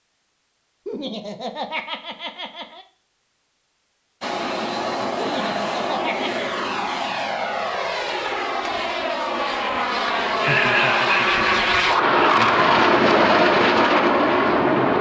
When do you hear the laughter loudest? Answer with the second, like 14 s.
11 s.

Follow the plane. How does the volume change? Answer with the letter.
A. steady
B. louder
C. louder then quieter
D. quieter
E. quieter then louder
B.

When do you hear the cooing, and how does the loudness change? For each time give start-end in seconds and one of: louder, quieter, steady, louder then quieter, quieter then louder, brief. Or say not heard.
not heard.